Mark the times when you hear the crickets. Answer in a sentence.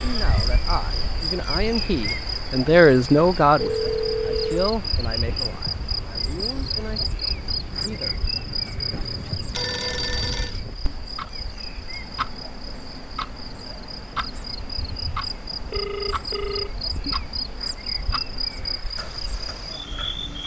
The crickets can be heard from 0.0 to 20.4 s.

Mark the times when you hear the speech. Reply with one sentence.
You can hear the speech from 0.0 to 8.2 s.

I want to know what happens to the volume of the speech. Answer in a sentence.
The loudness of the speech goes up, then down.